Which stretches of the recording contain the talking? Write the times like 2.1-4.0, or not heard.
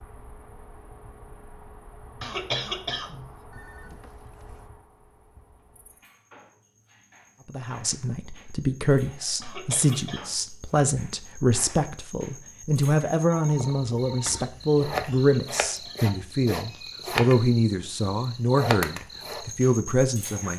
7.5-20.5.